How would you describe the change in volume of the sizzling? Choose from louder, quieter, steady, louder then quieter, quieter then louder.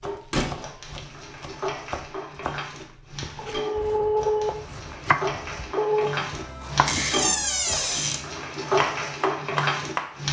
louder.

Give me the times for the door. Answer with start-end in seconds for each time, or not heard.
0.3-1.0, 6.8-8.2.